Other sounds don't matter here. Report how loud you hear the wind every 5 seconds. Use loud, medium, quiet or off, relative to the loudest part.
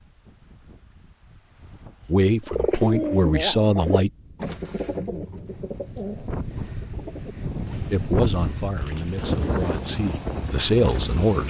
quiet, loud, loud.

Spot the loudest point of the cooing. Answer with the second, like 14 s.
3 s.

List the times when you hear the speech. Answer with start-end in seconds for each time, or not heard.
2.0-4.1, 7.9-11.4.